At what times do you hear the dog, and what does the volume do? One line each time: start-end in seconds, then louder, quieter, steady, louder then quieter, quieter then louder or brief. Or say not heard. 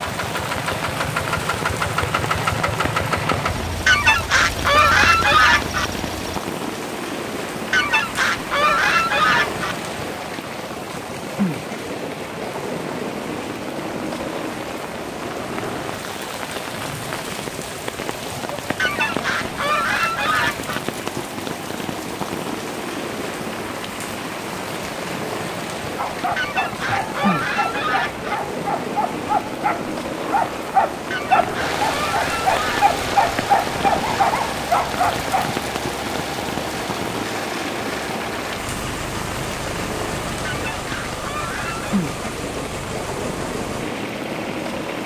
25.9-35.5 louder.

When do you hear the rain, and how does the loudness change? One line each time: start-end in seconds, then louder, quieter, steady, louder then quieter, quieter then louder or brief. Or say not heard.
0.0-45.0 steady.